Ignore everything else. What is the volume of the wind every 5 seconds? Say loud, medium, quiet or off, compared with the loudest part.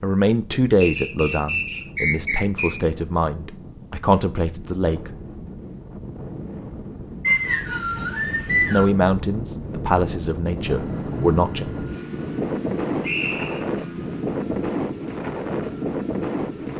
quiet, medium, loud, loud.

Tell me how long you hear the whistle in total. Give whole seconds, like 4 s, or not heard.
4 s.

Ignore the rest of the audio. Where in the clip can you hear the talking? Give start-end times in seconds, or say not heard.
0.0-5.2, 8.6-11.7.